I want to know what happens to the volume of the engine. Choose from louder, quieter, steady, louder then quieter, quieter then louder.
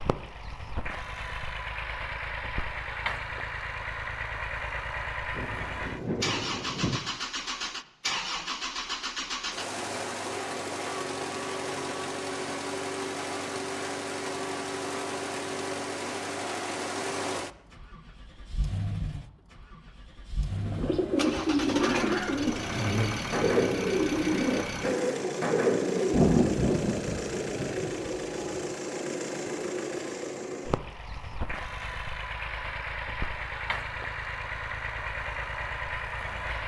steady.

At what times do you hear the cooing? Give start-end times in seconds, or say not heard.
20.6-26.3.